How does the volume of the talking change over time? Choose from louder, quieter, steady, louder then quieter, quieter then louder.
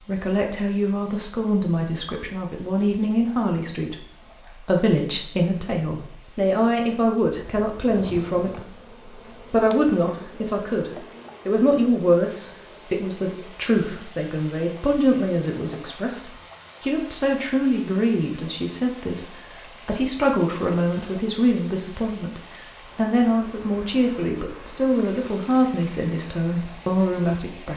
steady.